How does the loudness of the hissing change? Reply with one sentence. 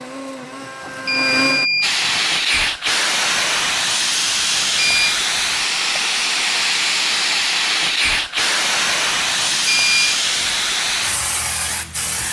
The volume of the hissing stays about the same.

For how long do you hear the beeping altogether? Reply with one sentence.
You can hear the beeping for 3 seconds altogether.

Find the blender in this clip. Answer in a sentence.
You can hear the blender from 0.0 to 1.7 s.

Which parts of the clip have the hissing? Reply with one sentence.
You can hear the hissing from 1.8 to 12.2 s.